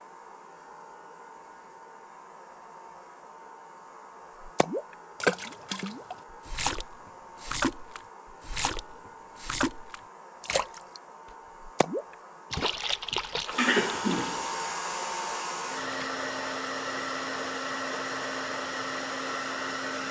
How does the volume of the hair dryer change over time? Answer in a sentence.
The volume of the hair dryer goes up.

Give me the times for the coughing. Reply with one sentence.
You can hear the coughing from 13.6 to 14.4 s.